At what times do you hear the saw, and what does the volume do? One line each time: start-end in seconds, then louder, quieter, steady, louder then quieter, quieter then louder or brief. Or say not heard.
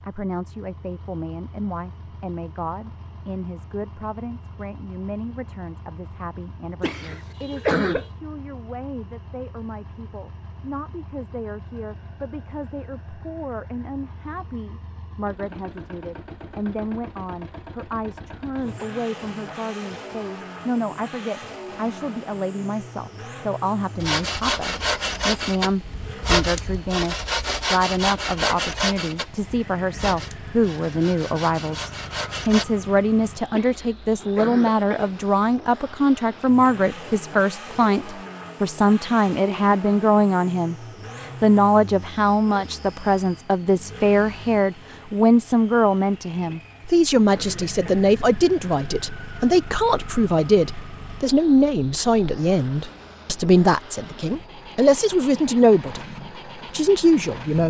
24.0-32.6 quieter.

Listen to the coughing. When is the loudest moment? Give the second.
8 s.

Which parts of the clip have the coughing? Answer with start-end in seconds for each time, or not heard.
6.8-8.1, 33.5-35.1, 46.5-48.0.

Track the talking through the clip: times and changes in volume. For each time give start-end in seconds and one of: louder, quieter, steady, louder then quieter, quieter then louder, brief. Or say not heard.
0.0-56.0 louder
56.6-57.6 brief.